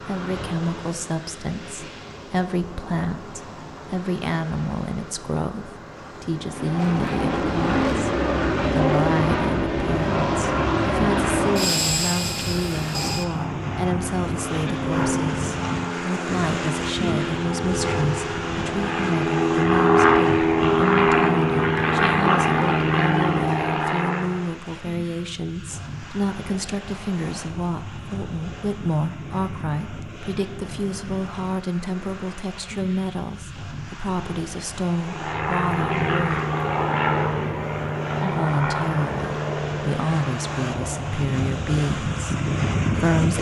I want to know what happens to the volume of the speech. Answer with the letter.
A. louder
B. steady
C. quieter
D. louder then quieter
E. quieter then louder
B.